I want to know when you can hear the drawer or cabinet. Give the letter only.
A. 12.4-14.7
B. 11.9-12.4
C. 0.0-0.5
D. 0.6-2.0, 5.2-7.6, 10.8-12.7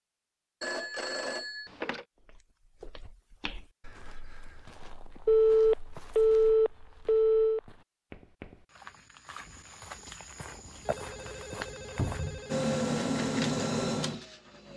B.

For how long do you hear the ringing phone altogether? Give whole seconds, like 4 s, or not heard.
6 s.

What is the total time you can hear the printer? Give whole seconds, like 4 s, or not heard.
2 s.